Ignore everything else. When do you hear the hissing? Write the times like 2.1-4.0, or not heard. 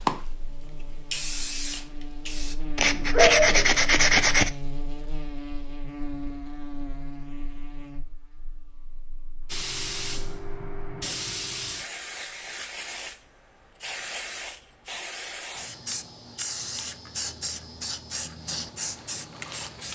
0.0-2.5, 9.4-19.9.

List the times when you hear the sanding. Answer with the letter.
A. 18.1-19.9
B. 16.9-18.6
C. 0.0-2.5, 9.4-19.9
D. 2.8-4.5
D.